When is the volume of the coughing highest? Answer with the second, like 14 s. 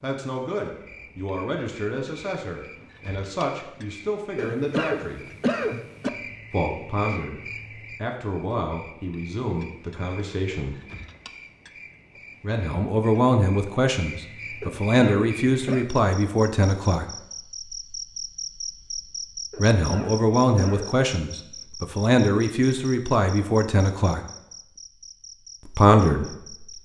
6 s.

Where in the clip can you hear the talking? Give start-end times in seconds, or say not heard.
0.0-5.2, 6.5-10.8, 12.4-17.1, 19.6-24.2, 25.6-26.6.